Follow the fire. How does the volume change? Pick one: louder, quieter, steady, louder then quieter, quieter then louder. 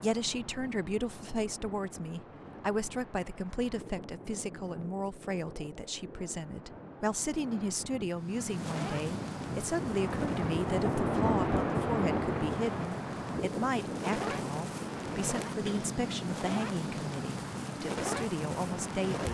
quieter then louder.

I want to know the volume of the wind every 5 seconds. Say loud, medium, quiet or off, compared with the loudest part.
quiet, medium, loud, medium.